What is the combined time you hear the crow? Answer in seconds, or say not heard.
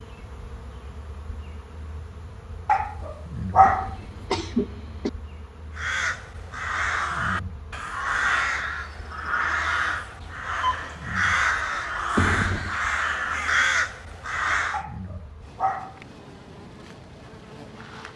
9 s.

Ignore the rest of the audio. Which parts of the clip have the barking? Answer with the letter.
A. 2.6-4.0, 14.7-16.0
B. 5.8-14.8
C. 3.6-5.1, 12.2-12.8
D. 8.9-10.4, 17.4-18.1
A.